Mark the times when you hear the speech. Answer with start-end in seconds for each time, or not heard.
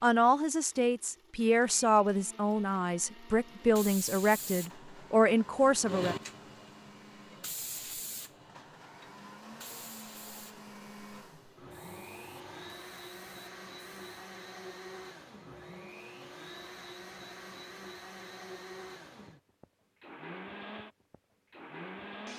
0.0-6.2.